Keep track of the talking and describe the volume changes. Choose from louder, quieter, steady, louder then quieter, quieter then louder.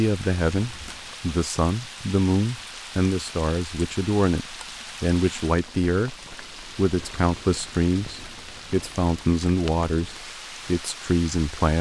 steady.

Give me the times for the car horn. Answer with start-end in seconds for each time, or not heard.
not heard.